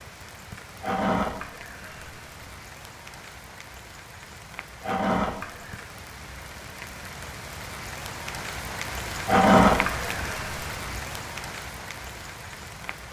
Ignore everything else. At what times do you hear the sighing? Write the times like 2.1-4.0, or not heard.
0.8-2.5, 4.8-5.8, 9.2-10.9.